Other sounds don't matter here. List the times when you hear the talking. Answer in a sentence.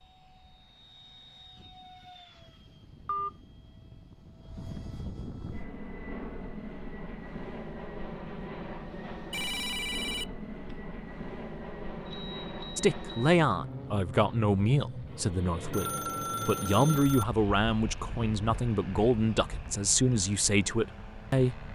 The talking can be heard from 12.8 to 21.6 s.